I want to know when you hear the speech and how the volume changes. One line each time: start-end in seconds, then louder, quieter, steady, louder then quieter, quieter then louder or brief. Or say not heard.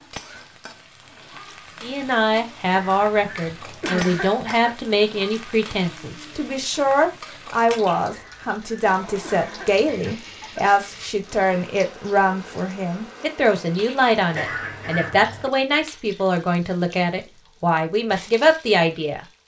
1.8-19.2 steady.